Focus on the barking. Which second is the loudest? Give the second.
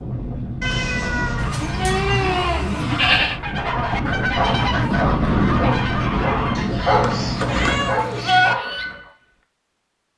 7 s.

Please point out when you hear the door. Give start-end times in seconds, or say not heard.
not heard.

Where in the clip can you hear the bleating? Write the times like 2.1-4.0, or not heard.
1.4-3.4, 7.0-8.6.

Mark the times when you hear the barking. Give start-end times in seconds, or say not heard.
3.5-9.1.